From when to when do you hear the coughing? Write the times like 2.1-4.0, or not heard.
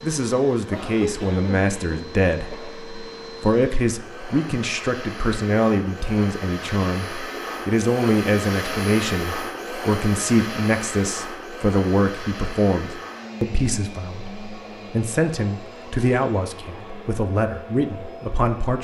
0.7-2.8.